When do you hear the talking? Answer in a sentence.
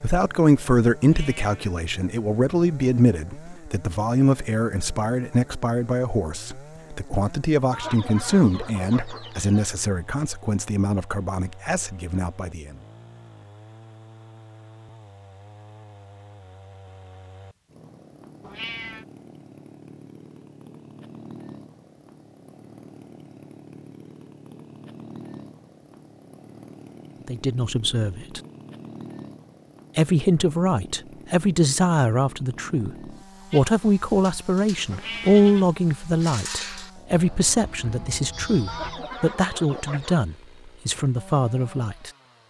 The talking can be heard from 0.0 to 12.8 s, from 27.2 to 28.4 s and from 29.9 to 42.1 s.